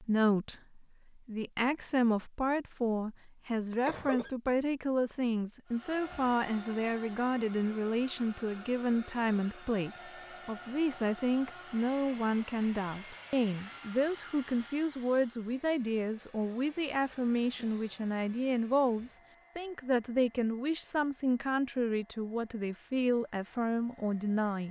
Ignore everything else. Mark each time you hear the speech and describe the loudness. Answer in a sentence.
The speech can be heard from 0.0 to 24.6 s, at a steady volume.